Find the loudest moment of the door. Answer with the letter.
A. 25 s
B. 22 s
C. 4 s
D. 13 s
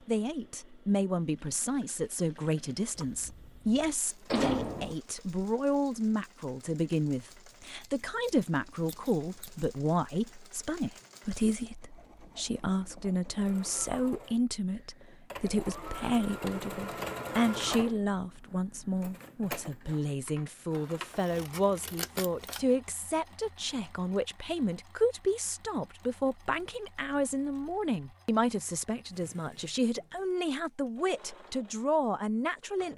C.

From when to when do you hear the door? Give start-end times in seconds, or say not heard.
3.0-5.0.